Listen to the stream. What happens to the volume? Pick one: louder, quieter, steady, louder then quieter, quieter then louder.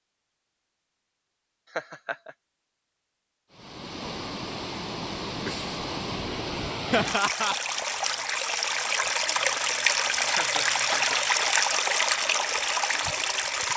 louder.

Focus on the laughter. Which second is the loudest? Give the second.
7 s.